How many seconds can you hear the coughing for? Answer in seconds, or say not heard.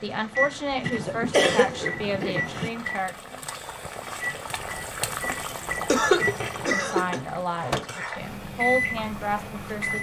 3 s.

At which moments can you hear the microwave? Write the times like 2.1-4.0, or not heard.
0.1-9.9.